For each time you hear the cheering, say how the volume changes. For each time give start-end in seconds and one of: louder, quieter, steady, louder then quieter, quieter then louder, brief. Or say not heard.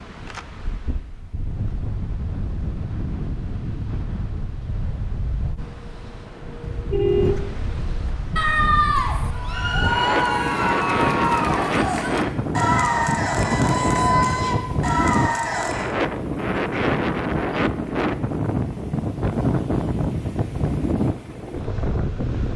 8.3-15.9 steady.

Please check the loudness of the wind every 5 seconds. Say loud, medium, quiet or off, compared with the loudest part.
medium, medium, loud, loud, loud.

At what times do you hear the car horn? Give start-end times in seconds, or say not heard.
6.6-7.8.